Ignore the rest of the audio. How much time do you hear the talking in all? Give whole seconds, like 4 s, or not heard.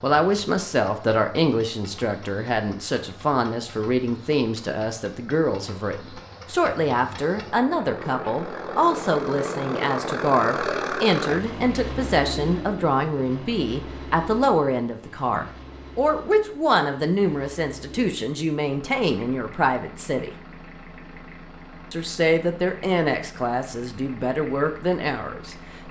24 s.